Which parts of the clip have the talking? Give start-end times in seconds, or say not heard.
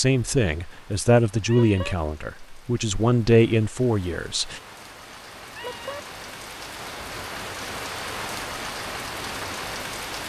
0.0-4.6.